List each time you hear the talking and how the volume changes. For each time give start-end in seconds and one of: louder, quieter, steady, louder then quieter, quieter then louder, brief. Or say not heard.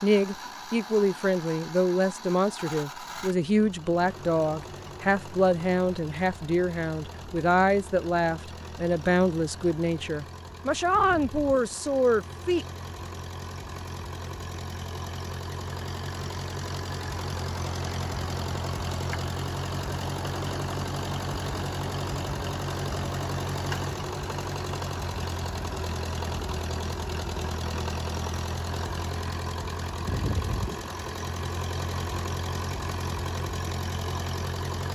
0.0-12.7 steady.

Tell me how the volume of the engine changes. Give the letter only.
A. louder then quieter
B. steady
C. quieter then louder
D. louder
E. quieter
D.